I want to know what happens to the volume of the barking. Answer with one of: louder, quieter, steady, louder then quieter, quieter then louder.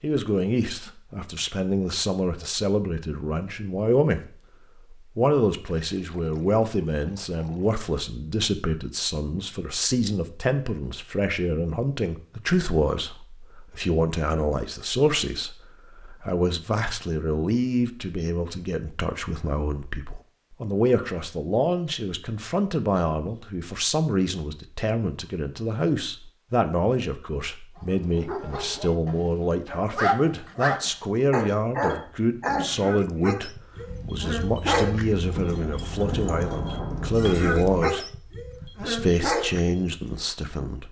quieter then louder.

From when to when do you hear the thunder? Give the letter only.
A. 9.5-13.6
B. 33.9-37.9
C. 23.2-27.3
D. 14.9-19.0
B.